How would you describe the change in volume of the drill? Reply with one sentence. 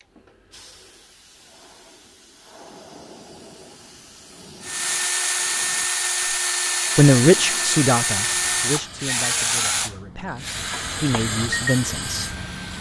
The loudness of the drill goes down.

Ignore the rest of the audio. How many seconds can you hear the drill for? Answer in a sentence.
You can hear the drill for 8 seconds altogether.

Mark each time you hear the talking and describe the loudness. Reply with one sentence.
You can hear the talking from 7.0 to 12.2 s, getting quieter then louder.